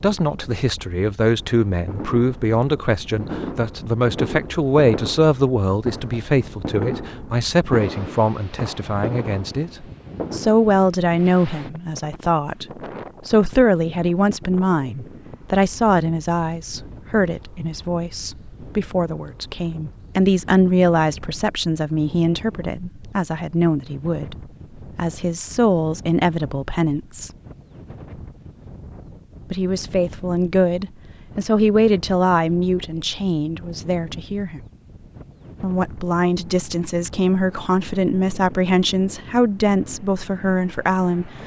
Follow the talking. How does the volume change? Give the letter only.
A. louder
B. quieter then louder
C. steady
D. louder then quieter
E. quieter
C.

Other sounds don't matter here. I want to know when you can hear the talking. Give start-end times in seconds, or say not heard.
0.0-12.7, 13.2-27.3, 29.5-34.6, 35.6-41.4.